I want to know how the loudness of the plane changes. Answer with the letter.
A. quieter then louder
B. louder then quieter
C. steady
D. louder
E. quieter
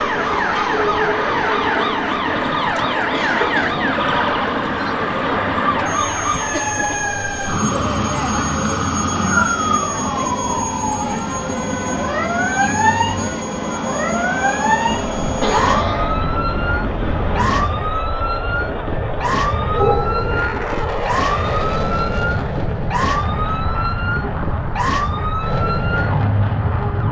C.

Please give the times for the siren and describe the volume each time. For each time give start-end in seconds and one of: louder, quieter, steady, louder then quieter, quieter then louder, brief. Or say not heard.
0.0-27.0 steady.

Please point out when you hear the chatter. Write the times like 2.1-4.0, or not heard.
0.1-19.9.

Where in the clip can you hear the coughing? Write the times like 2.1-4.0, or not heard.
3.1-3.8, 15.4-16.2, 19.7-20.5.